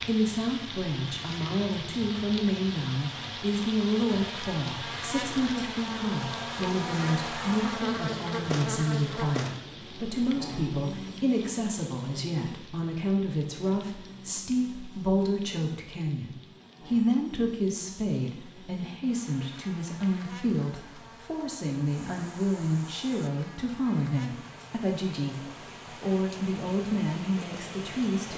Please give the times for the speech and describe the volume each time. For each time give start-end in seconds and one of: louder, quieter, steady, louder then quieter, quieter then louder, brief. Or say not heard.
0.0-28.3 steady.